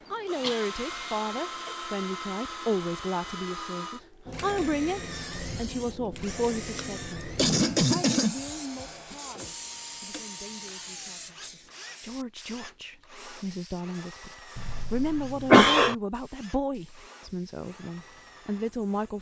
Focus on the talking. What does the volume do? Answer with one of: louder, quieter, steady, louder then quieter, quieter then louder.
quieter then louder.